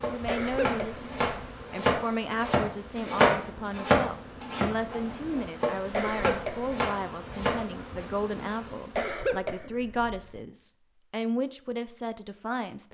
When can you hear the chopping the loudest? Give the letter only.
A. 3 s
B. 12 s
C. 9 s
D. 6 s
A.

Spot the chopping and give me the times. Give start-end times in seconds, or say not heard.
0.0-8.1.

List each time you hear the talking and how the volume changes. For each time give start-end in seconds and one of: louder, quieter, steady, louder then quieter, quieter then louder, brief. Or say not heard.
0.1-12.8 steady.